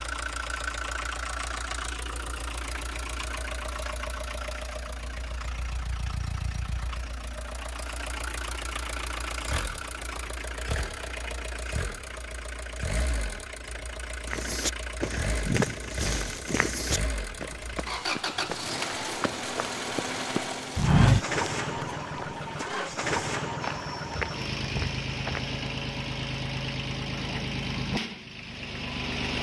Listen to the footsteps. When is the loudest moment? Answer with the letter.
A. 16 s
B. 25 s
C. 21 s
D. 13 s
C.